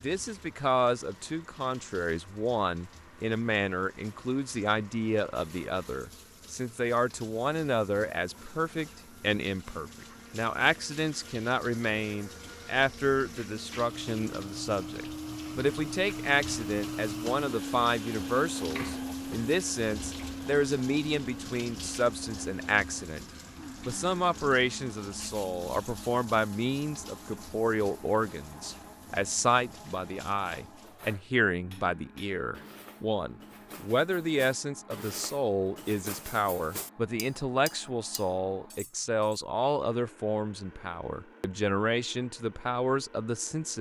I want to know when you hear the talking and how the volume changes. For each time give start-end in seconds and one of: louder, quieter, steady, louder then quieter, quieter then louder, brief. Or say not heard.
0.0-23.2 steady
23.9-43.7 steady.